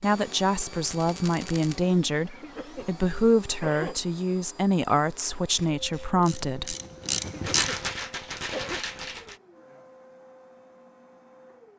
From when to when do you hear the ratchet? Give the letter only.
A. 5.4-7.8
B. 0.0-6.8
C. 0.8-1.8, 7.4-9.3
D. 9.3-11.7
A.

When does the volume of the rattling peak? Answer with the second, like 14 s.
8 s.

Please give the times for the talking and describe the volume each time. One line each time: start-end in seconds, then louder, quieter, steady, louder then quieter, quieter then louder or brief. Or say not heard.
0.0-6.8 steady.